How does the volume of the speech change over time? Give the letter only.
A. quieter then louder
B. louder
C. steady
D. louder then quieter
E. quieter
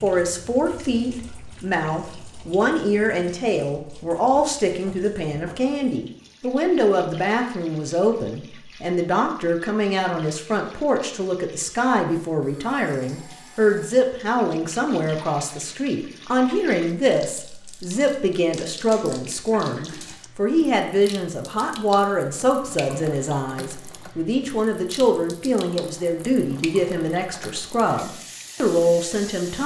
C.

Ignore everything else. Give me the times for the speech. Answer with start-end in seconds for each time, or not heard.
0.0-29.6.